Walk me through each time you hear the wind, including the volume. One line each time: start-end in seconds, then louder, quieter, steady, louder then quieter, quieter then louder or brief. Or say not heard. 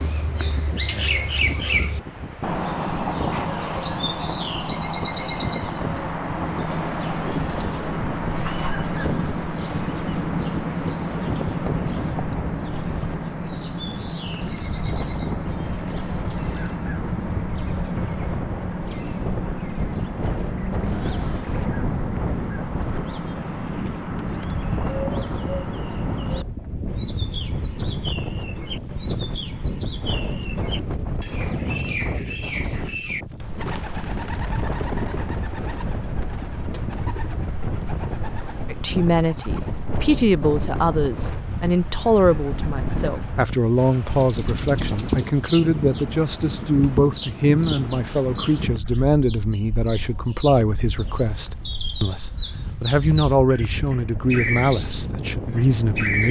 0.0-56.2 steady.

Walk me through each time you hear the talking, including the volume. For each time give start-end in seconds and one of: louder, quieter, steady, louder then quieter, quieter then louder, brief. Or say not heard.
38.7-56.2 steady.